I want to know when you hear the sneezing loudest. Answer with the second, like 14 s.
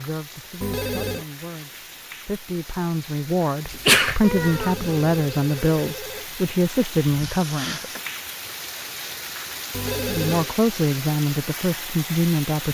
4 s.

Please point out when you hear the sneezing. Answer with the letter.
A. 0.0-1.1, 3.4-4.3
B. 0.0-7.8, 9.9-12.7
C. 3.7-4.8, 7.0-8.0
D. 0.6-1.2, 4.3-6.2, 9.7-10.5
C.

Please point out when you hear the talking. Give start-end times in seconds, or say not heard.
0.0-7.8, 9.9-12.7.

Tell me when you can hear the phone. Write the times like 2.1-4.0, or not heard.
0.6-1.2, 4.3-6.2, 9.7-10.5.